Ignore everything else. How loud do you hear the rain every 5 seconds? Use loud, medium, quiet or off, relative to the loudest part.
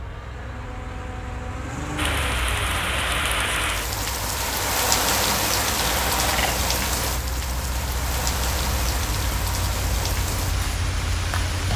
loud, loud, medium.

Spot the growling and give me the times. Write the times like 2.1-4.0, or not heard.
5.8-6.6.